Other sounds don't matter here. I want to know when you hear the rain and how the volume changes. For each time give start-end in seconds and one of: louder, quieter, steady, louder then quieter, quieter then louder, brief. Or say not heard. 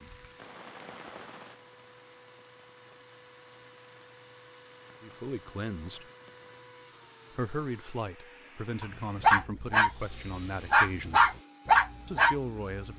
0.0-6.7 quieter.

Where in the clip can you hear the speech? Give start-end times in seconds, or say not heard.
5.0-6.1, 7.3-11.3, 12.1-12.9.